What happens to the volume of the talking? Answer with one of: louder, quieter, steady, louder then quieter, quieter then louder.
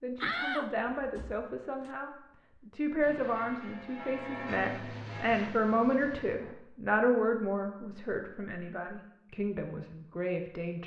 louder then quieter.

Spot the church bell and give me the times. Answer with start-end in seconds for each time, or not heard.
3.2-5.4.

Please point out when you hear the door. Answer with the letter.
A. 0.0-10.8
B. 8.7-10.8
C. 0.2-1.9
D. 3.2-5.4
C.